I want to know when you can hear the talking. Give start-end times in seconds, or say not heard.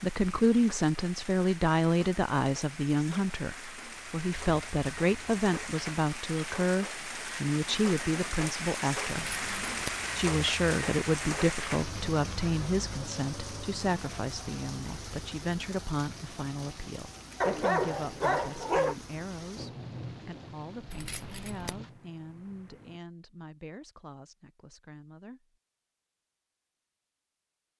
0.0-9.2, 10.2-25.6.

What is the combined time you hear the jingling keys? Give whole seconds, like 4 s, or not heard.
2 s.